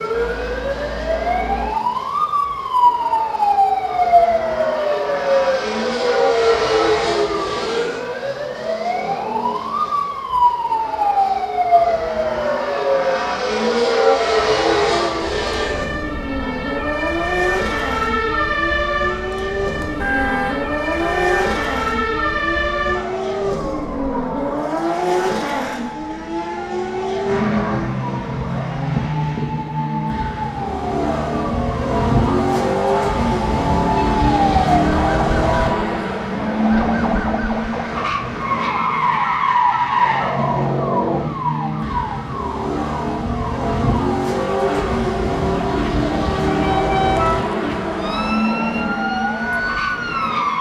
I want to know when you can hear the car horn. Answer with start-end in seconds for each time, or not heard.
0.1-1.8, 19.8-21.6, 46.5-48.4.